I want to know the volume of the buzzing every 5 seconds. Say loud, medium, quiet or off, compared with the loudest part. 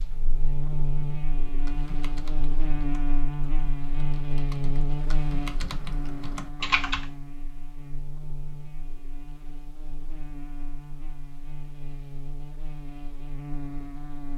loud, medium, medium.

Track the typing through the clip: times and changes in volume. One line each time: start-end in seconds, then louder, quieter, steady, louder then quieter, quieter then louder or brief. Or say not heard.
1.5-7.1 quieter then louder.